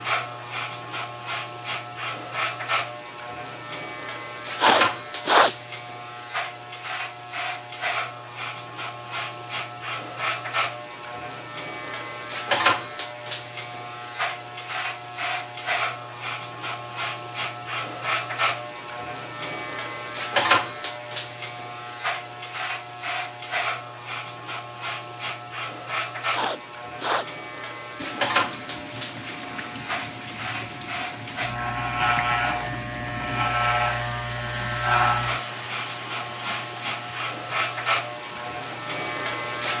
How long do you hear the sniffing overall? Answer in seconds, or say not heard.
2 s.